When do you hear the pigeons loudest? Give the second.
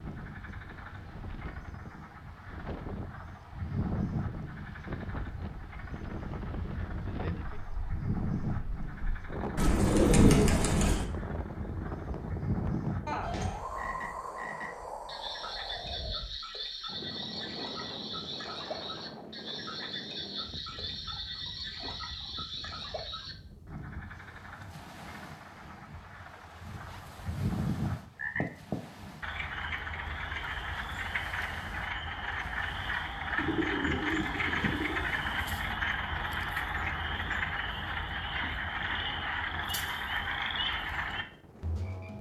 10 s.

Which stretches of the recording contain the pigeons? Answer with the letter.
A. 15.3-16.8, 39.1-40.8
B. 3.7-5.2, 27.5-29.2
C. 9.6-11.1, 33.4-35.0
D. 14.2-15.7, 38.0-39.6
C.